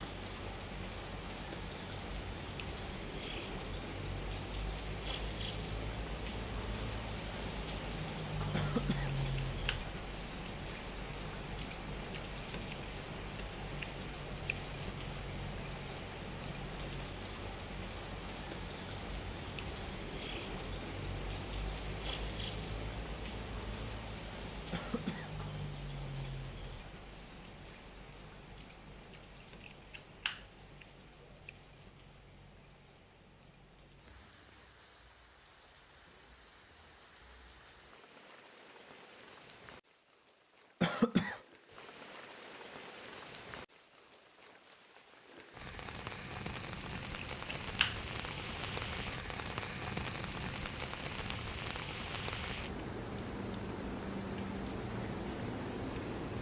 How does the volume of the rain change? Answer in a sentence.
The loudness of the rain goes down, then up.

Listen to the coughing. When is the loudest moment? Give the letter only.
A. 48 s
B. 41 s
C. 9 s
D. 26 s
B.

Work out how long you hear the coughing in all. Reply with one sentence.
You can hear the coughing for 2 seconds altogether.